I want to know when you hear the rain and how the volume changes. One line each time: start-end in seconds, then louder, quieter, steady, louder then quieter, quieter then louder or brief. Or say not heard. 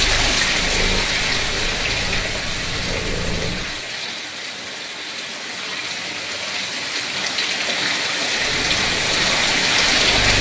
0.0-10.3 quieter then louder.